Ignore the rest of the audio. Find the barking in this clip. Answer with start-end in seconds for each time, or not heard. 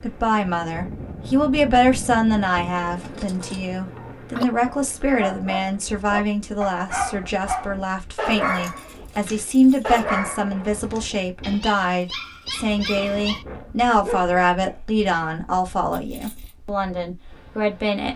3.3-14.8.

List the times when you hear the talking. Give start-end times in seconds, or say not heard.
0.0-18.1.